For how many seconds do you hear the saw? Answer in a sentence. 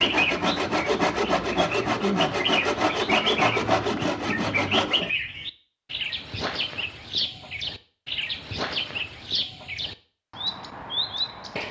You can hear the saw for 5 seconds altogether.